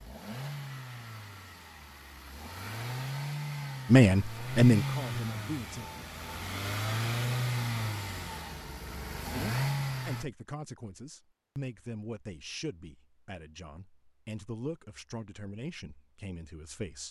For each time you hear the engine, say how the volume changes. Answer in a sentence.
You can hear the engine from 0.0 to 10.2 s, getting louder.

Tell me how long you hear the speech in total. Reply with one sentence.
You can hear the speech for 10 seconds altogether.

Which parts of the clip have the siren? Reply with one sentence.
The siren can't be heard in this clip.